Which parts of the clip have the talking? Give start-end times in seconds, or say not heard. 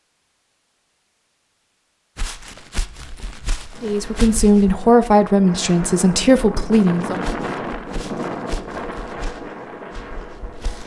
3.8-7.2.